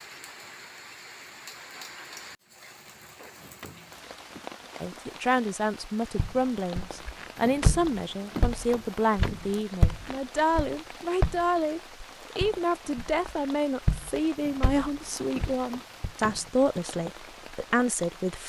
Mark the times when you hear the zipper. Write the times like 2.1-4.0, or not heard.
not heard.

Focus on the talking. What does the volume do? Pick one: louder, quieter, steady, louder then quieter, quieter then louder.
steady.